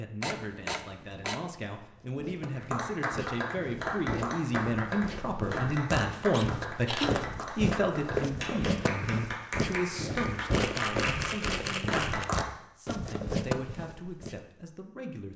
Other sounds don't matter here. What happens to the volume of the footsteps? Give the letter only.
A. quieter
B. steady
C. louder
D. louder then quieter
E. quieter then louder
C.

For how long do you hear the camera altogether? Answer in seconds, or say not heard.
4 s.